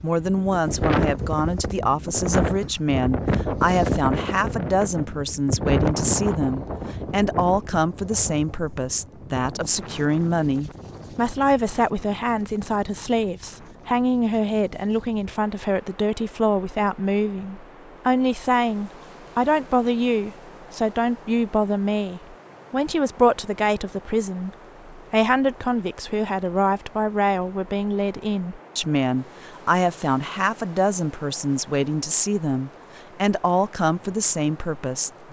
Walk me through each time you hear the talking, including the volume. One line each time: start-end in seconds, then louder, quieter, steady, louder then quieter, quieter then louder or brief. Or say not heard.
0.0-35.2 steady.